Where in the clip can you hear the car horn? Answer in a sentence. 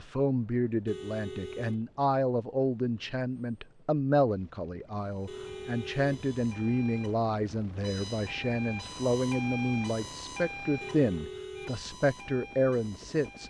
You can hear the car horn from 0.8 to 1.8 s, from 5.2 to 6.4 s and from 10.8 to 12.0 s.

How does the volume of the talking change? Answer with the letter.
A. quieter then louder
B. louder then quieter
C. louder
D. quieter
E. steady
E.